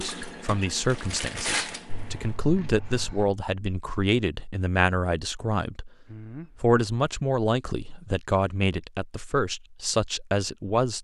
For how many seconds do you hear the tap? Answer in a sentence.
The tap can be heard for 2 seconds in total.